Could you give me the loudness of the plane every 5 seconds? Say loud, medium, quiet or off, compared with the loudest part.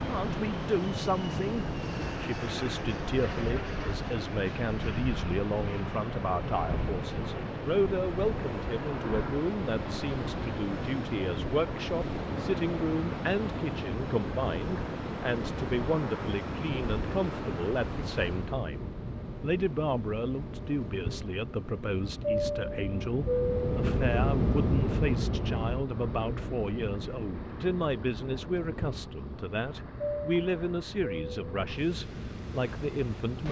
medium, medium, medium, medium, loud, medium, medium.